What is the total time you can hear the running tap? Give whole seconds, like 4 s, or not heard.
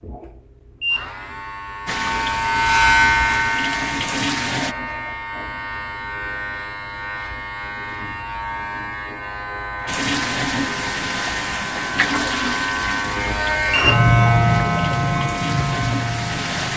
10 s.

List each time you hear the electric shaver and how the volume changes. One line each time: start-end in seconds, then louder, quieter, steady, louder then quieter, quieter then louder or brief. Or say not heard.
0.0-16.7 quieter then louder.